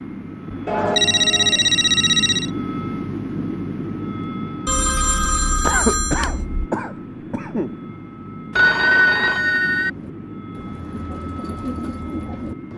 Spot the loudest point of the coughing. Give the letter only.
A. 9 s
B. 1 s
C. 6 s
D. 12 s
C.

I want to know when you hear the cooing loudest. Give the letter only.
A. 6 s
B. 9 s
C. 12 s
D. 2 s
C.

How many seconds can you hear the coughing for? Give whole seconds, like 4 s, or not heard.
2 s.